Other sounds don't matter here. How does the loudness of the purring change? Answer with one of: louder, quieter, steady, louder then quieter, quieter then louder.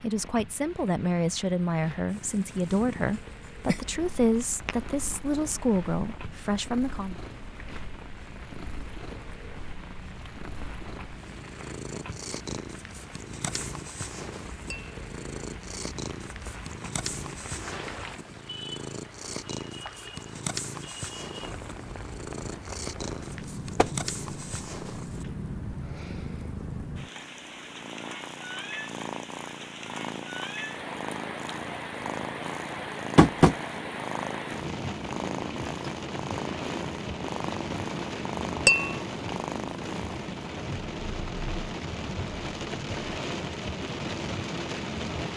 louder.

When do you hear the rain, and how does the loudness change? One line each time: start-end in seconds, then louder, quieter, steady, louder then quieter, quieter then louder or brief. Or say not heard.
0.0-45.3 louder.